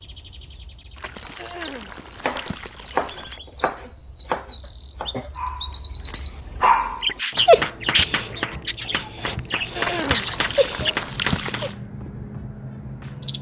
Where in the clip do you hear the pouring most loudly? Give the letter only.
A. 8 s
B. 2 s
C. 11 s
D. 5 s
C.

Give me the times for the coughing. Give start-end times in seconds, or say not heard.
1.4-1.9, 4.6-5.3, 9.7-10.3.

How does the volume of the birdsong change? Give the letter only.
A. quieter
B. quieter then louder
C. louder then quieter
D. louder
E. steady
C.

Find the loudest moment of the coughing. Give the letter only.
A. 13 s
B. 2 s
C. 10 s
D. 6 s
C.